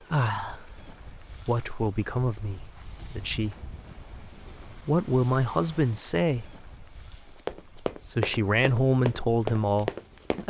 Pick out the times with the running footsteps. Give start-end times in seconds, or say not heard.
7.3-10.4.